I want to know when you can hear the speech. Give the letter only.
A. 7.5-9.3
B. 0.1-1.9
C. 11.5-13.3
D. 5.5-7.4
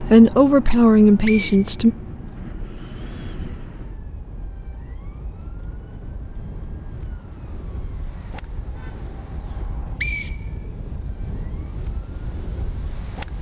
B.